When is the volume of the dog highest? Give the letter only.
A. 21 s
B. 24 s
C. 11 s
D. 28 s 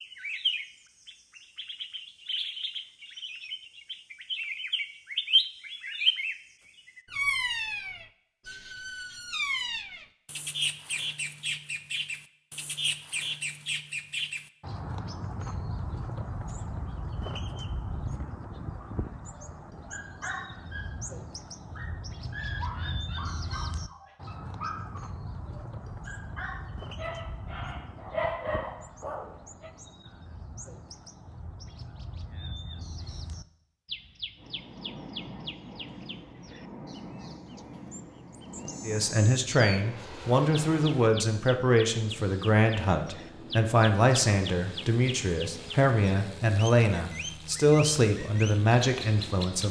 D.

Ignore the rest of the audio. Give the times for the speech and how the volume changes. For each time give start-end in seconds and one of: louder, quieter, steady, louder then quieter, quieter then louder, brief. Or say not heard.
38.9-49.6 steady.